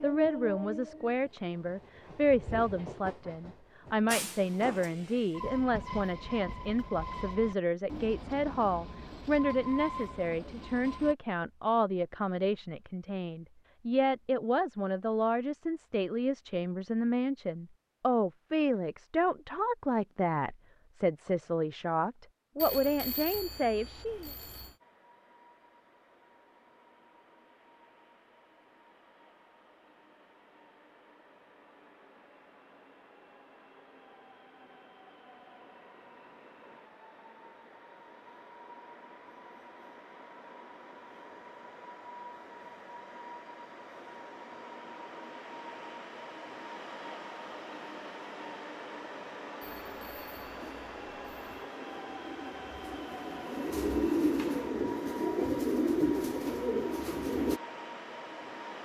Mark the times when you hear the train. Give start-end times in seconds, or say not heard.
0.0-11.2, 24.8-58.8.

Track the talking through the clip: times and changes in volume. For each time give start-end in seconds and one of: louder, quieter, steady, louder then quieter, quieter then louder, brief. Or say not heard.
0.0-24.3 steady.